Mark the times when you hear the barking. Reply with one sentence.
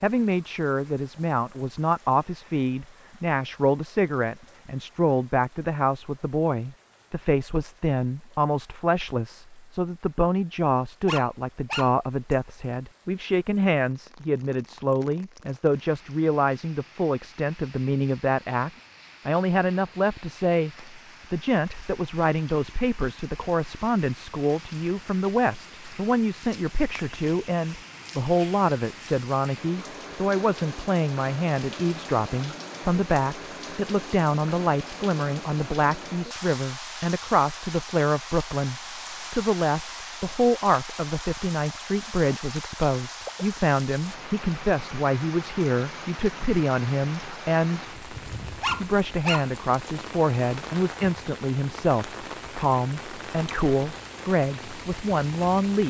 The barking can be heard from 11.1 to 12.3 s and from 48.6 to 49.9 s.